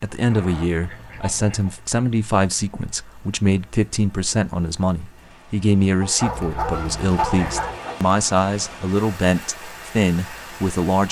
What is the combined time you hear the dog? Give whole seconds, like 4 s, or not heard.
2 s.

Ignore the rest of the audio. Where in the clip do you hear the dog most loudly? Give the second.
7 s.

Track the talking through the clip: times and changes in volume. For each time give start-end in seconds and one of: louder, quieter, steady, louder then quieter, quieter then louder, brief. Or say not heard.
0.0-11.0 steady.